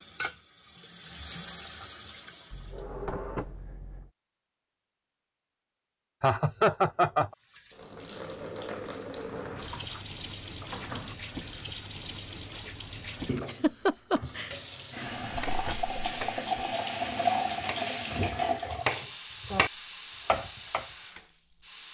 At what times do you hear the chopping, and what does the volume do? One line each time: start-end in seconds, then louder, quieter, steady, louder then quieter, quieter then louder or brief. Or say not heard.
15.3-20.9 quieter then louder.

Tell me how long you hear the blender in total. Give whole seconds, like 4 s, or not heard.
not heard.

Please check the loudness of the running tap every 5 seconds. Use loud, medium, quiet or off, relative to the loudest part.
medium, medium, medium, loud, medium.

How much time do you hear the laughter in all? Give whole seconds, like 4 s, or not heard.
2 s.